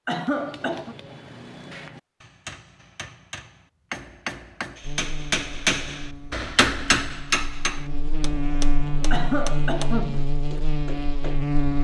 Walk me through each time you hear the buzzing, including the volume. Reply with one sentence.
You can hear the buzzing from 4.8 to 11.7 s, getting louder.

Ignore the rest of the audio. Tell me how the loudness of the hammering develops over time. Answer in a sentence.
The loudness of the hammering goes up, then down.